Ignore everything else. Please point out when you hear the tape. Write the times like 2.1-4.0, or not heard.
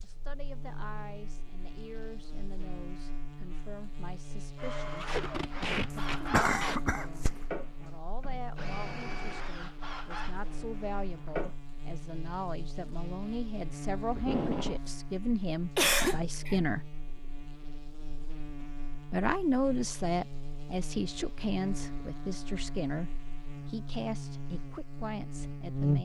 5.0-6.8, 14.2-14.8.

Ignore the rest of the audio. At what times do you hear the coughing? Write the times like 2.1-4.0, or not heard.
5.9-7.5, 15.8-16.6.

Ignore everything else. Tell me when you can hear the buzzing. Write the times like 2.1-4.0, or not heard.
0.0-26.0.